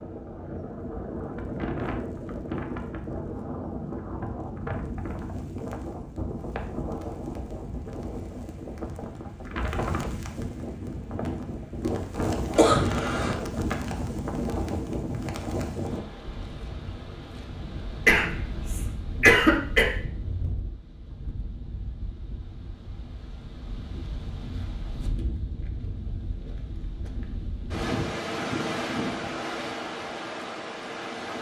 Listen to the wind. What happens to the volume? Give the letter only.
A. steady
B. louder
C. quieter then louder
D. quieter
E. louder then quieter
C.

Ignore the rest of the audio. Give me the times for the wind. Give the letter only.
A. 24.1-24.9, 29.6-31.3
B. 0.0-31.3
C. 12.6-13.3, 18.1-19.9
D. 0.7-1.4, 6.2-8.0
B.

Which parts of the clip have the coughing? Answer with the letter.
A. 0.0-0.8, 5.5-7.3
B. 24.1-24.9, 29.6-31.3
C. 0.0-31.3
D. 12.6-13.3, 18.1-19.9
D.